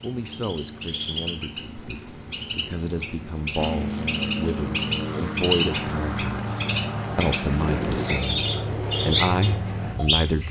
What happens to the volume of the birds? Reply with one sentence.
The volume of the birds goes up.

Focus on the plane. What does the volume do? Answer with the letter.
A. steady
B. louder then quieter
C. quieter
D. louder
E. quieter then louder
D.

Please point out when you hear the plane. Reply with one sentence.
You can hear the plane from 0.1 to 10.4 s.